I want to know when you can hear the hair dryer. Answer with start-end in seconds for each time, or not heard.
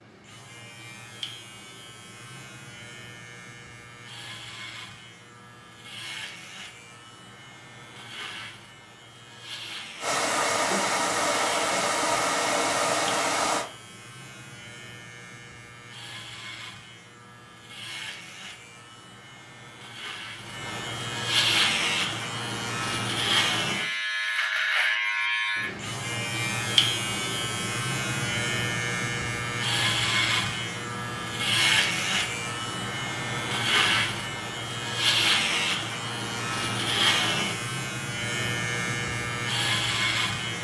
10.0-13.7.